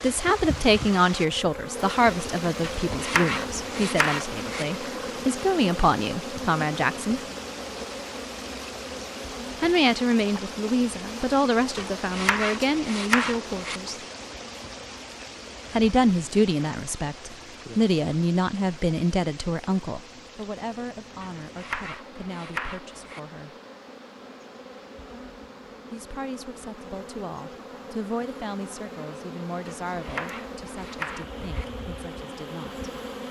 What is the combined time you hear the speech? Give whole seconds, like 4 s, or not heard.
26 s.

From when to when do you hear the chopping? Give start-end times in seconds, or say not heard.
2.6-4.7, 11.8-13.8, 21.2-23.2, 29.6-31.6.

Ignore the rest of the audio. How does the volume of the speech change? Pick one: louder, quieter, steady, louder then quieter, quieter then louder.
quieter.